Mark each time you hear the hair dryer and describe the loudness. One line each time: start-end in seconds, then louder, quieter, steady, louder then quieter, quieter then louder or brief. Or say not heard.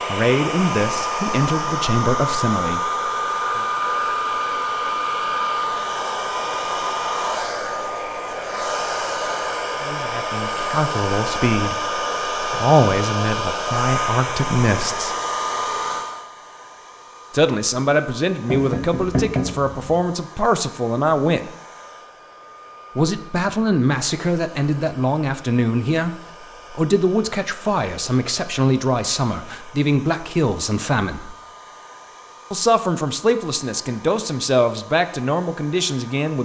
0.0-36.3 quieter.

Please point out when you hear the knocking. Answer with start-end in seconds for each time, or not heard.
18.4-20.0.